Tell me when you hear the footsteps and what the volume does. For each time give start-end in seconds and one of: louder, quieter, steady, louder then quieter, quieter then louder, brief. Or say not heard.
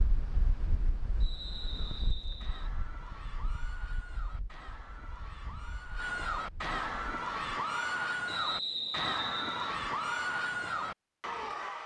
not heard.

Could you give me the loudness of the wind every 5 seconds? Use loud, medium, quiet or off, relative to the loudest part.
loud, medium, off.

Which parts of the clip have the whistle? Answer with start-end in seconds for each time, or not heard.
1.2-2.7, 8.2-9.8.